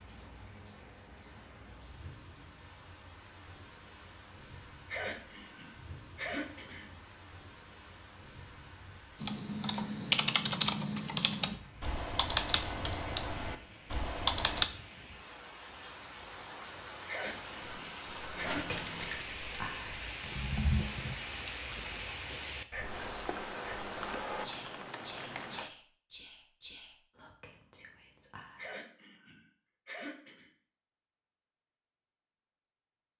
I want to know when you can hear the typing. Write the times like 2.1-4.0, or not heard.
9.2-14.7, 17.6-21.1.